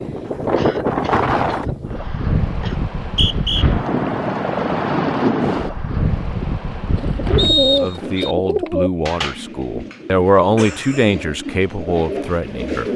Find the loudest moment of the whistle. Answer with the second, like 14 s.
8 s.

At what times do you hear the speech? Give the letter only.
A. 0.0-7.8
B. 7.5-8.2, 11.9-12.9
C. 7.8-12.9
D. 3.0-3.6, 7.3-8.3
C.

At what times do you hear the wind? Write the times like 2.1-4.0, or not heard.
0.0-7.8.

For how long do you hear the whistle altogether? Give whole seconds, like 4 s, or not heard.
2 s.